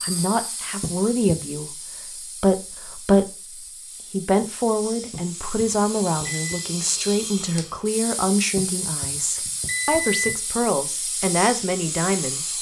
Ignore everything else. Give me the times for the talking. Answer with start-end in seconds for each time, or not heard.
0.0-12.5.